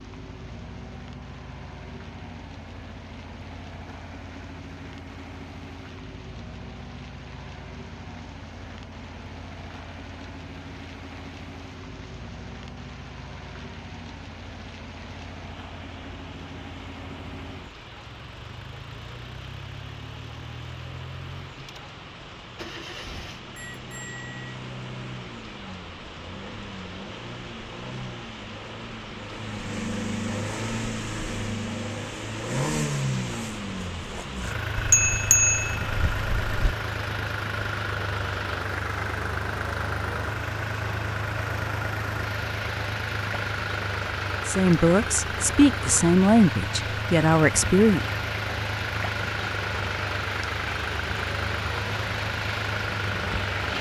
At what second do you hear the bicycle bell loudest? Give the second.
35 s.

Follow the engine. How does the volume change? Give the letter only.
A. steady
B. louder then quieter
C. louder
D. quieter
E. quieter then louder
C.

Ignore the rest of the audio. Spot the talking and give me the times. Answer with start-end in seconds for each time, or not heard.
44.5-48.0.